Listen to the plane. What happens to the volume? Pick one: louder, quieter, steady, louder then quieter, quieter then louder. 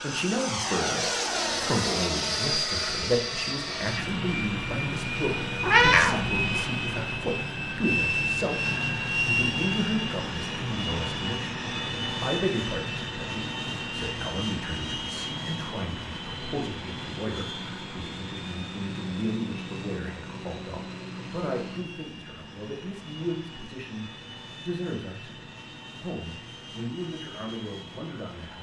quieter.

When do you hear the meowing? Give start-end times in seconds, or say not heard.
5.6-6.5.